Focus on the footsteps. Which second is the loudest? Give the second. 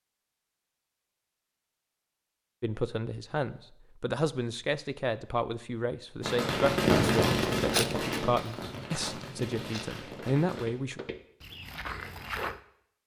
8 s.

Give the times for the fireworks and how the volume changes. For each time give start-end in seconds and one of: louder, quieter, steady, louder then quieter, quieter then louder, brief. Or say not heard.
6.2-10.7 quieter.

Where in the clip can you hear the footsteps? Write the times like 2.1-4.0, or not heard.
7.0-12.6.